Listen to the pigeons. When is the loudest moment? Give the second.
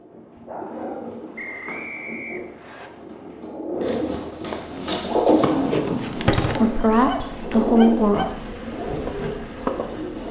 5 s.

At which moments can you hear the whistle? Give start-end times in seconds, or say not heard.
1.4-2.9.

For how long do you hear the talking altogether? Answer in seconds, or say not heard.
2 s.